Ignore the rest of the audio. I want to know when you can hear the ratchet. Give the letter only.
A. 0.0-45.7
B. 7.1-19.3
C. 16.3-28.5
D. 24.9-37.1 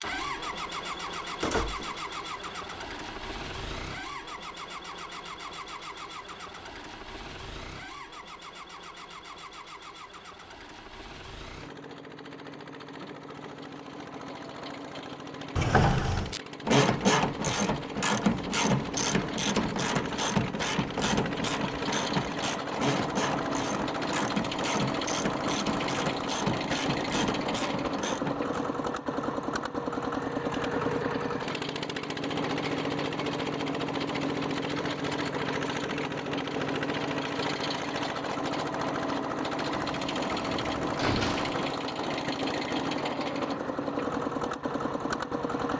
C.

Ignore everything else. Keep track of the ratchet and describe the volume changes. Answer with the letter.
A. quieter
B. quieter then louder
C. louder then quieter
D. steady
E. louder
A.